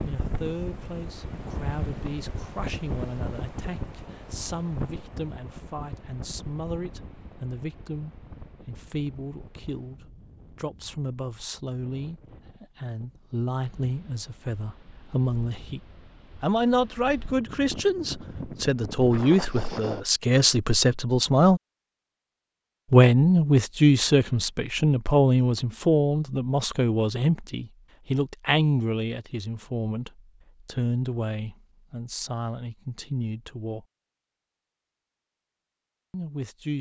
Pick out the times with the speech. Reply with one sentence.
The speech can be heard from 0.1 to 15.8 s, from 16.4 to 21.6 s, from 22.9 to 33.9 s and from 36.1 to 36.7 s.